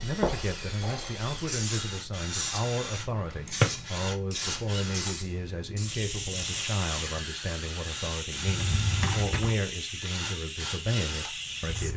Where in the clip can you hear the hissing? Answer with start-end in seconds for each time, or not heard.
0.0-11.9.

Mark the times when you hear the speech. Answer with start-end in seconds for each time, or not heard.
0.0-11.9.